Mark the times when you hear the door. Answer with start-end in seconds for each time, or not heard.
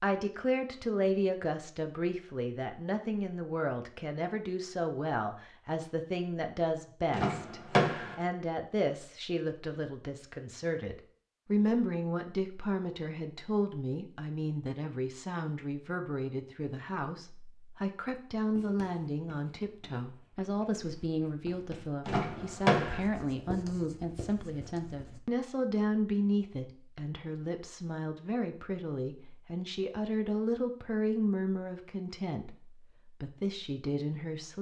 7.1-8.2, 22.1-23.0.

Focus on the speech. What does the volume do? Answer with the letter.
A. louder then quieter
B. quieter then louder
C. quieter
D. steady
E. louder
D.